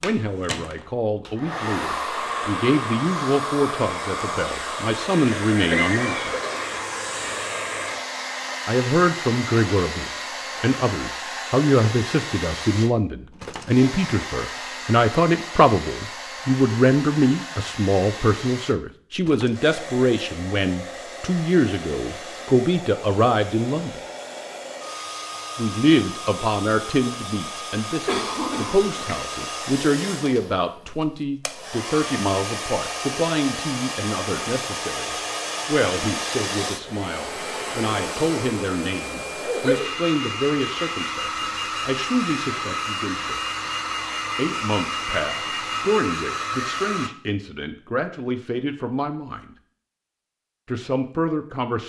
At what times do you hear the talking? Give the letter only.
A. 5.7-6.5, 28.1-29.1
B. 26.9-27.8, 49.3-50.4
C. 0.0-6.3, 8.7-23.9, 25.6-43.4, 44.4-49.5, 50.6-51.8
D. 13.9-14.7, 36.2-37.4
C.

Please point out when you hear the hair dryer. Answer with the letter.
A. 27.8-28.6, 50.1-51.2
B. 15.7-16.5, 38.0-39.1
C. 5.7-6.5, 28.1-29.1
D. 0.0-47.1
D.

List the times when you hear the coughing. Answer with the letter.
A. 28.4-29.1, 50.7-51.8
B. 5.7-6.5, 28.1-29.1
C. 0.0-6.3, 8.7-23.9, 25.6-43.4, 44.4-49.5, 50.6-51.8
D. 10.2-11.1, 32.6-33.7
B.